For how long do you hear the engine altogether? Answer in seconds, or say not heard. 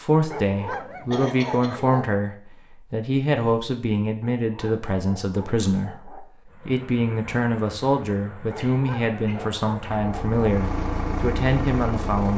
6 s.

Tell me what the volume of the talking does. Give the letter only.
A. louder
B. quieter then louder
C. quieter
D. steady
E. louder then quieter
D.